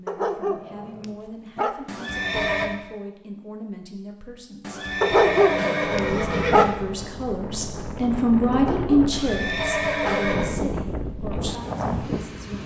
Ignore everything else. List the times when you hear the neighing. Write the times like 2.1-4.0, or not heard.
1.9-2.7, 4.6-6.7, 9.1-10.6.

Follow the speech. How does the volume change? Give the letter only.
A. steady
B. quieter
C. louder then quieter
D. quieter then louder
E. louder
C.